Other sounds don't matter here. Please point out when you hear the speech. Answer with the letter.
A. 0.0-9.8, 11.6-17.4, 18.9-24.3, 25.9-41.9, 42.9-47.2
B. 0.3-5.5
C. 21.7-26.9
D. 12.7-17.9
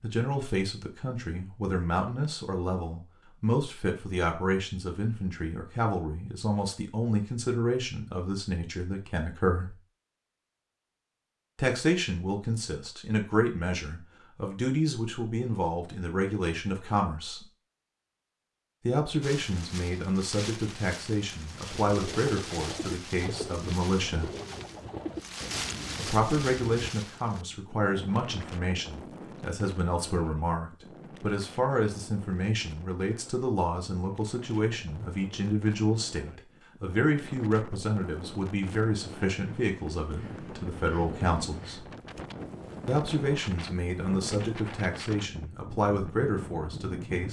A.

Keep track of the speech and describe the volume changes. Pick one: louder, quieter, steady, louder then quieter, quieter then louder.
steady.